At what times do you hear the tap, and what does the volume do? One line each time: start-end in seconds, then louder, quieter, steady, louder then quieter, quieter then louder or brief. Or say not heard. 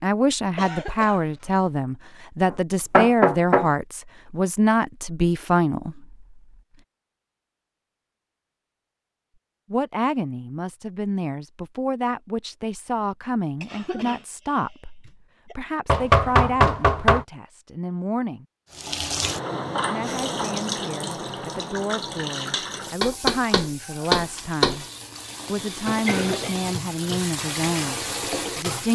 18.7-28.9 quieter then louder.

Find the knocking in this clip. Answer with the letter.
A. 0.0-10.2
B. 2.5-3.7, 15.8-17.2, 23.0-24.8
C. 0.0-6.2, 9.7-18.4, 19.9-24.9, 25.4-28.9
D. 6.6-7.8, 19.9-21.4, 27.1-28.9
B.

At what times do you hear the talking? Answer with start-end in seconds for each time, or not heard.
0.0-6.2, 9.7-18.4, 19.9-24.9, 25.4-28.9.